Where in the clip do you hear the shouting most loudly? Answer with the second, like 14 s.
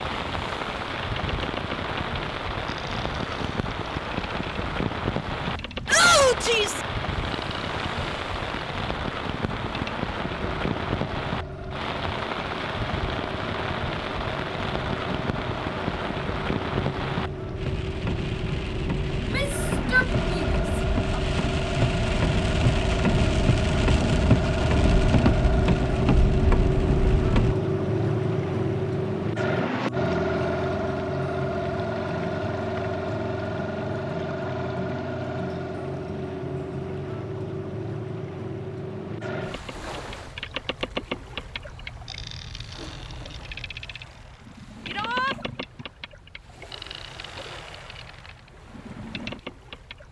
6 s.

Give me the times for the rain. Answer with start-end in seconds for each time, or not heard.
0.0-27.6.